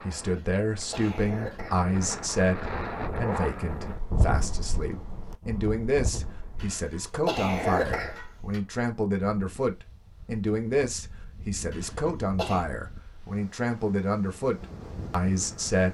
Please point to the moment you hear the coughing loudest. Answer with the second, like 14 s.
8 s.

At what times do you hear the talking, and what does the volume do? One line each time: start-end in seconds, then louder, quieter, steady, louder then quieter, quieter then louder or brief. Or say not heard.
0.0-15.8 steady.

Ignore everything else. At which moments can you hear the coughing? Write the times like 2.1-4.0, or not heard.
0.2-1.8, 6.5-8.6, 11.7-12.7.